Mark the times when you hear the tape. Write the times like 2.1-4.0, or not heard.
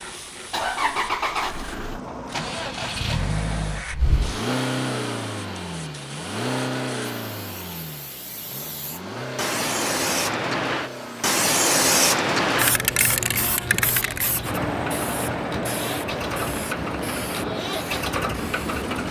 not heard.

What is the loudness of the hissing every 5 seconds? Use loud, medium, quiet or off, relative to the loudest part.
quiet, medium, loud, medium.